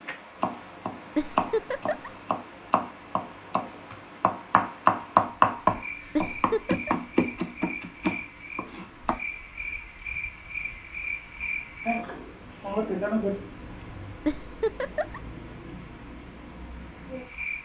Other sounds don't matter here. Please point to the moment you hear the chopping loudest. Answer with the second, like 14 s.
5 s.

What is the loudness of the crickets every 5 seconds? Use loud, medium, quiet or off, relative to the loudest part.
quiet, medium, loud, medium.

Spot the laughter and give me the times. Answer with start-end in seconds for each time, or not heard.
1.1-2.1, 6.2-7.0, 14.2-15.2.